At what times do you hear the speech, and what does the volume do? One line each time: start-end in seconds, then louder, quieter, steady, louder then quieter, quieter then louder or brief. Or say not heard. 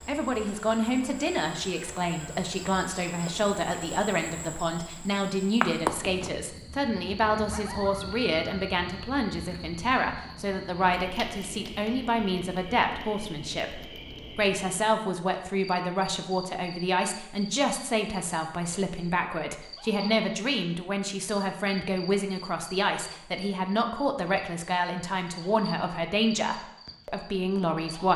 0.1-28.1 steady.